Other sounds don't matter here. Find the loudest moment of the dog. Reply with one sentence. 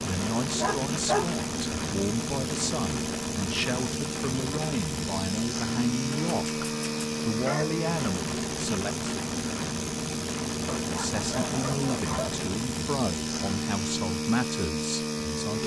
The loudest moment of the dog is at 1 second.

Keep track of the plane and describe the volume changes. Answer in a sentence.
The loudness of the plane stays about the same.